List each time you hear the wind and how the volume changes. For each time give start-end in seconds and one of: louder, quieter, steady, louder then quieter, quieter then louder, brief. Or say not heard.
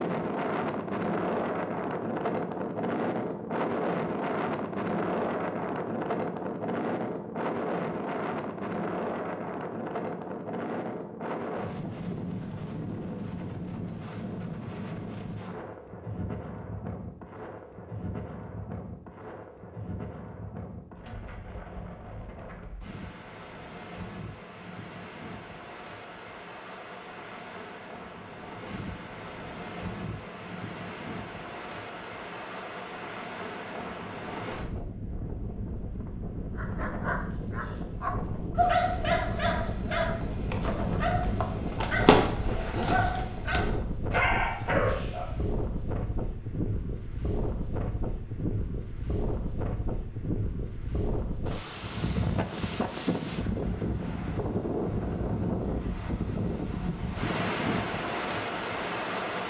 0.0-59.4 quieter then louder.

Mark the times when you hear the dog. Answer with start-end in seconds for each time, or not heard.
36.5-45.3.